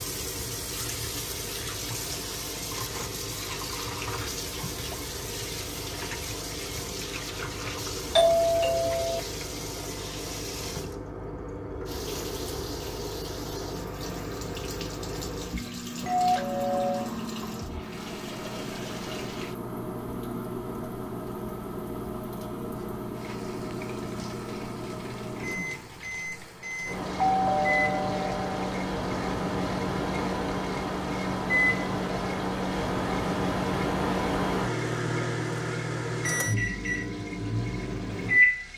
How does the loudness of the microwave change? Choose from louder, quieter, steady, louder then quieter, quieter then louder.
louder.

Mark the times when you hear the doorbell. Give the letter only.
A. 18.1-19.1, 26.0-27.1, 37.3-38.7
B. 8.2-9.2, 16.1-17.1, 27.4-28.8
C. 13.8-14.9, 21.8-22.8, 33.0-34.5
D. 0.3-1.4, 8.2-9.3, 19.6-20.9
B.